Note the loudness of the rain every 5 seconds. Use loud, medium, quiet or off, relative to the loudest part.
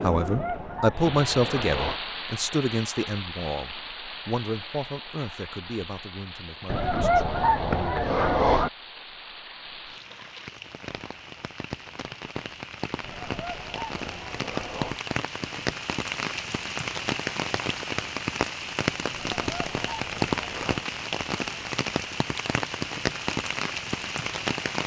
medium, quiet, medium, loud, loud.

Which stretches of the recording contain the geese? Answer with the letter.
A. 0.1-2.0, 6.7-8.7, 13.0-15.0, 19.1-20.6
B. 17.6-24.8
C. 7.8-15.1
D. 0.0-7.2
A.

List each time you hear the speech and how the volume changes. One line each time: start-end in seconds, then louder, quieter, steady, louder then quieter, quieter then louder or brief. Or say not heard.
0.0-7.2 quieter.